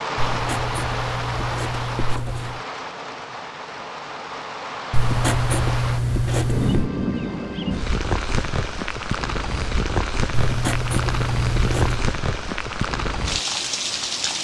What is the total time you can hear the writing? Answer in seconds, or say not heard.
6 s.